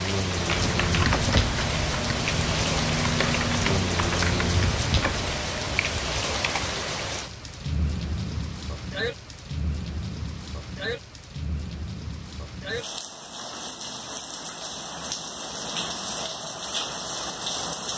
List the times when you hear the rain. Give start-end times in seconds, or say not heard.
0.0-17.9.